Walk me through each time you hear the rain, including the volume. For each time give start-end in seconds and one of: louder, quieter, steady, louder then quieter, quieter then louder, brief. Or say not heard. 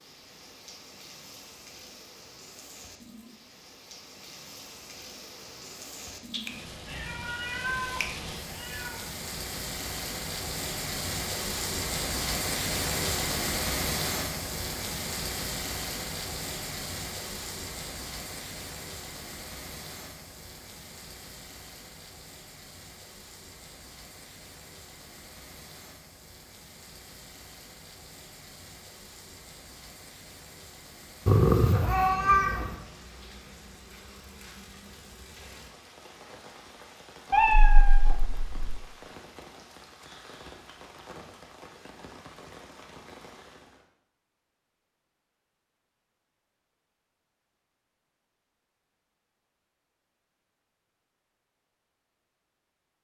0.0-43.9 louder then quieter.